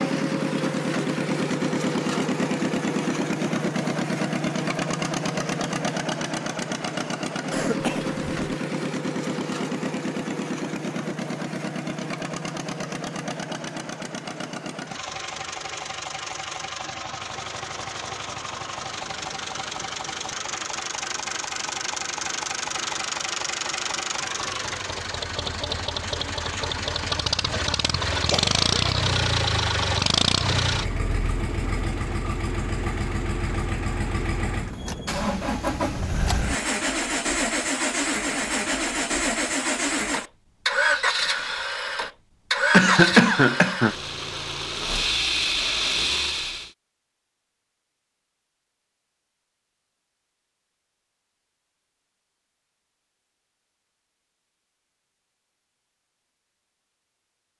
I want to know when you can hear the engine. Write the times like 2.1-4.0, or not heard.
0.0-46.7.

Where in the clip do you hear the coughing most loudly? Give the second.
43 s.